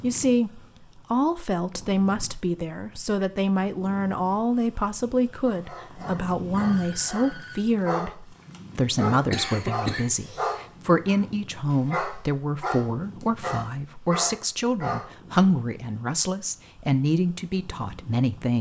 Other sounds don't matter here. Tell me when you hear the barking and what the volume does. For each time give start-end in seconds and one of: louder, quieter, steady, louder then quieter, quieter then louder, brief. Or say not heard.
5.5-15.1 louder.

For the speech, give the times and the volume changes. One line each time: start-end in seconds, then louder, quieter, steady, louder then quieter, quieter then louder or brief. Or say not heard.
0.0-18.5 steady.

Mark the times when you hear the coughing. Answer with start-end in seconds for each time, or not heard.
9.3-10.5.